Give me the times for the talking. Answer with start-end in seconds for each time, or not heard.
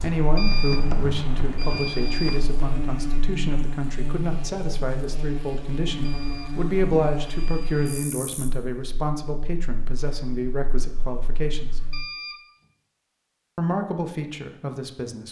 0.0-11.8, 13.6-15.2.